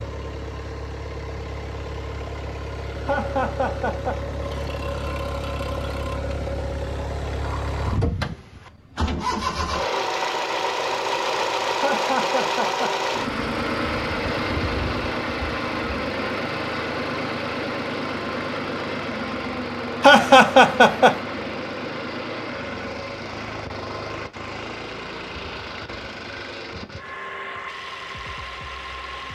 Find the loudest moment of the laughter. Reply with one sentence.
The volume of the laughter peaks at 20 seconds.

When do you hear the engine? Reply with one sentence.
The engine can be heard from 0.0 to 29.3 s.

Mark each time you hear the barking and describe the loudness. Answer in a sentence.
The barking can't be heard in this clip.